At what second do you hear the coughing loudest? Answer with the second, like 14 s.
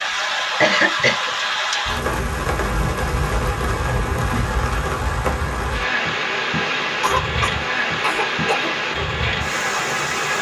1 s.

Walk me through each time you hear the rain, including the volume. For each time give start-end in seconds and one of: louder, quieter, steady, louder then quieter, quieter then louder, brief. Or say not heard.
0.0-10.3 steady.